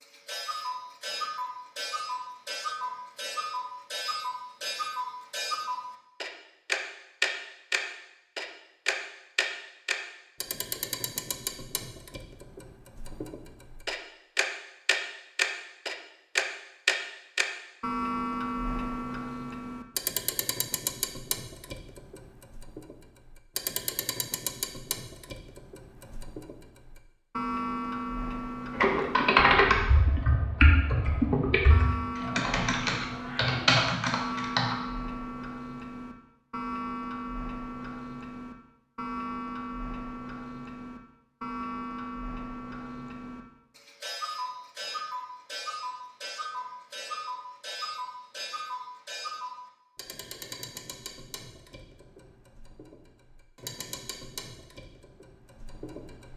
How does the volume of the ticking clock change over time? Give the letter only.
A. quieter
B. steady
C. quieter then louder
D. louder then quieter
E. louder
A.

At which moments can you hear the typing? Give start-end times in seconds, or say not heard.
28.8-34.8.